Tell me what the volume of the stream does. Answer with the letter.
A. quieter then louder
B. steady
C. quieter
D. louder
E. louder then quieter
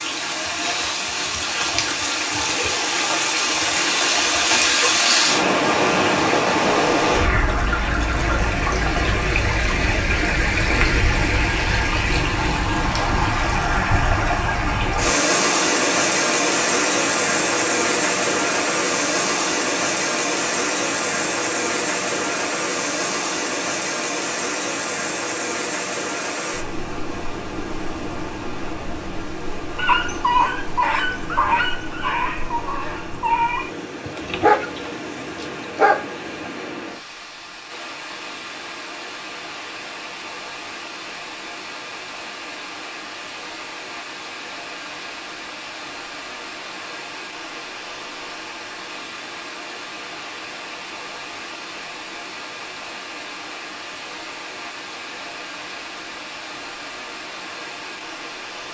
C.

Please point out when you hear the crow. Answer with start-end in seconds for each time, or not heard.
not heard.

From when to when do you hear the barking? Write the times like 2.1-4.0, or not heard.
29.8-36.5.